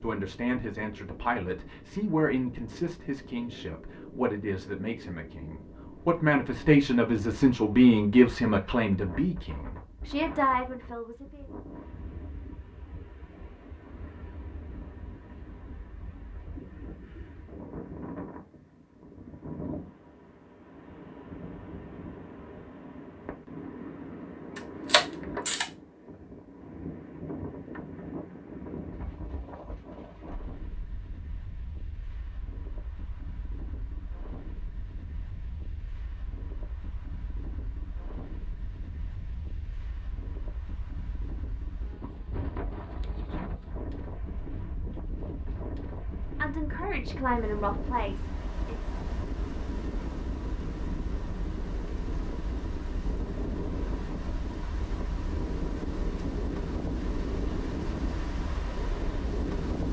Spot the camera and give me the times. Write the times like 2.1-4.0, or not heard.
24.6-25.7.